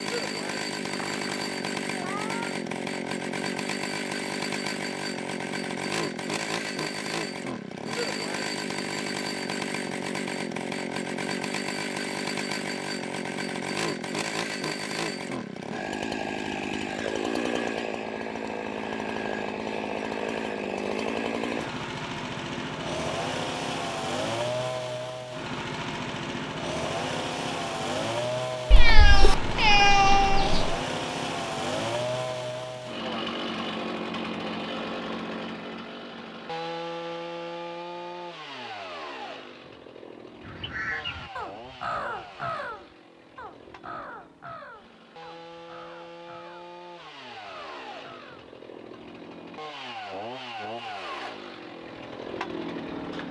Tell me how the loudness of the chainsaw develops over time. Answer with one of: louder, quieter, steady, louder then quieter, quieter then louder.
quieter.